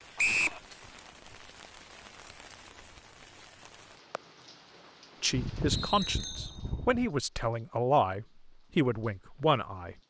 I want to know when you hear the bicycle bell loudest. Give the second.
6 s.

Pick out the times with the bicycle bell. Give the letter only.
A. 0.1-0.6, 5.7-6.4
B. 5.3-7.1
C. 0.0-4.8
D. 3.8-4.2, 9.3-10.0
B.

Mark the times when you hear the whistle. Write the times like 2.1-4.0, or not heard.
0.1-0.6, 5.7-6.4.